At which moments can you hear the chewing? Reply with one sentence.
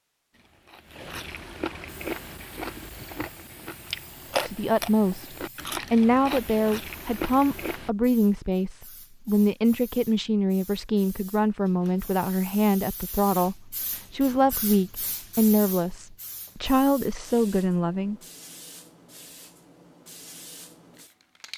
You can hear the chewing from 0.3 to 7.9 s.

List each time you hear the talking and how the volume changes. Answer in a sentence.
You can hear the talking from 4.5 to 18.1 s, at a steady volume.